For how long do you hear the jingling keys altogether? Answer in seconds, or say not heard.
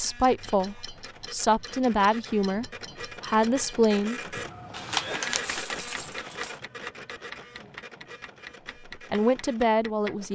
2 s.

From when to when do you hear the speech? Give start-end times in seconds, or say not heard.
0.0-4.2, 9.1-10.3.